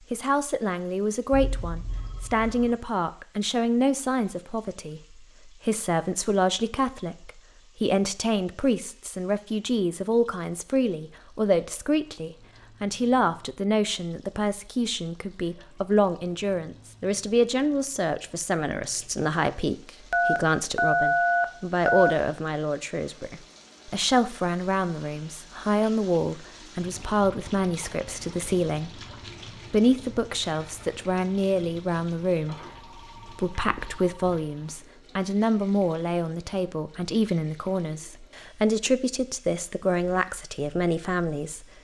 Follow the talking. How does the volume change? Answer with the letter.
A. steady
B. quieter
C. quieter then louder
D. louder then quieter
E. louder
A.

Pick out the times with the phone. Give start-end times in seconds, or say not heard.
1.3-2.8, 20.1-22.1, 32.6-34.1.